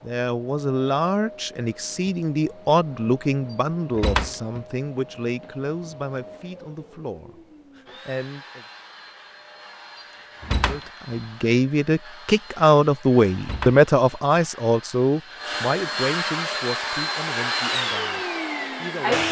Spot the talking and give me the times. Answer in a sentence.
You can hear the talking from 0.0 to 8.7 s and from 10.7 to 19.2 s.